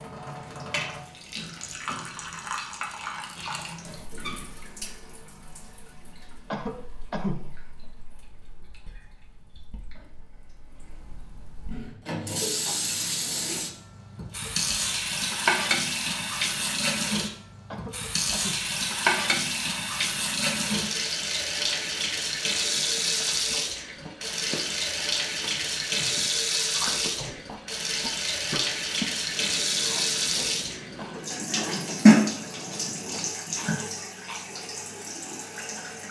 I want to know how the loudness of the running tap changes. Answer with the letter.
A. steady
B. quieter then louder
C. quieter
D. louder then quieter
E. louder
E.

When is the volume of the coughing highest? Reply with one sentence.
The volume of the coughing peaks at 7 seconds.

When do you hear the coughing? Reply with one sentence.
The coughing can be heard from 6.5 to 7.5 s, from 17.7 to 18.6 s and from 30.9 to 31.9 s.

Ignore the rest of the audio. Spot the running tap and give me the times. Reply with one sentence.
The running tap can be heard from 0.0 to 36.0 s.